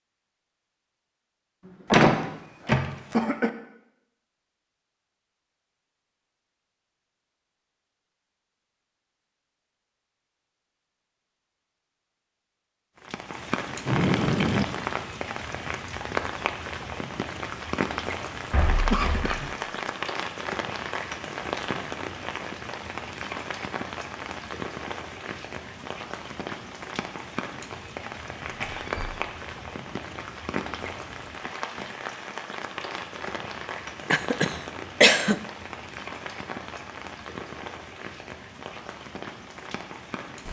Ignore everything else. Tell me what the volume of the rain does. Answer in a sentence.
The volume of the rain goes down.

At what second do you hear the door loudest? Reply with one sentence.
The volume of the door peaks at 2 seconds.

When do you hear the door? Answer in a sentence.
The door can be heard from 1.9 to 3.1 s, from 18.5 to 19.4 s and from 28.5 to 29.1 s.